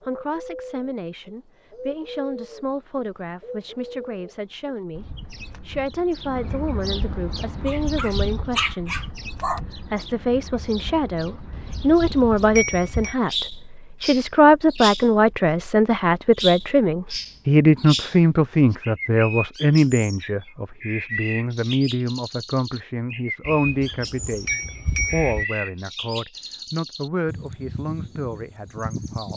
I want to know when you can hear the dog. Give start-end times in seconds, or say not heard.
7.7-9.6.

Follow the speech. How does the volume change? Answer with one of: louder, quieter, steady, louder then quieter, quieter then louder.
louder then quieter.